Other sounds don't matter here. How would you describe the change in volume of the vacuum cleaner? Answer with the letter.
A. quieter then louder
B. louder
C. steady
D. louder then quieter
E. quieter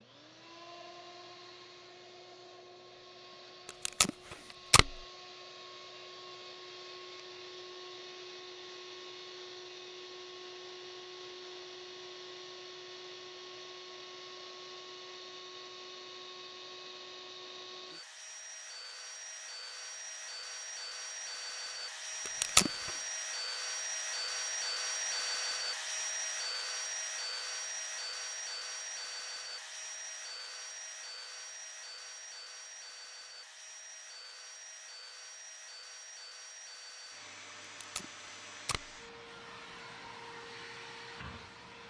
D.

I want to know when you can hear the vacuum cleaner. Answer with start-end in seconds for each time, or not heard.
0.0-41.8.